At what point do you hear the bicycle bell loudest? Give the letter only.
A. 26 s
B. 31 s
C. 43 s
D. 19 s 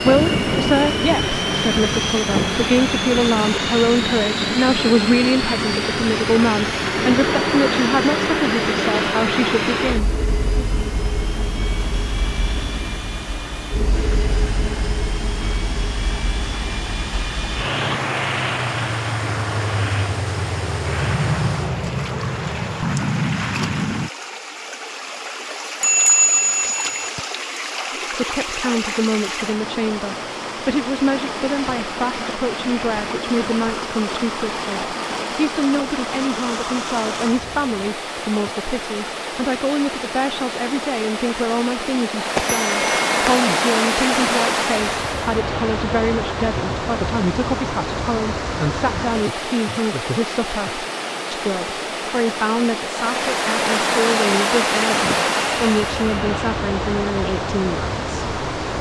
A.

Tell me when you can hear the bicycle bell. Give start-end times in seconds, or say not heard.
25.8-27.1, 42.4-43.4.